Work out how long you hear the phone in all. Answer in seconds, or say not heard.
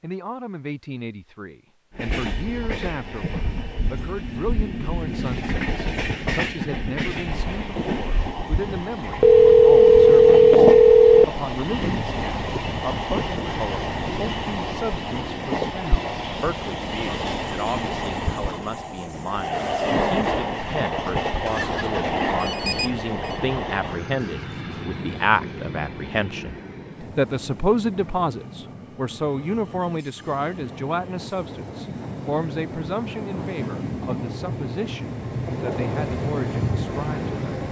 4 s.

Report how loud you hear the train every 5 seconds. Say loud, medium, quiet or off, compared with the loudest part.
medium, loud, loud, loud, loud, medium, medium, loud.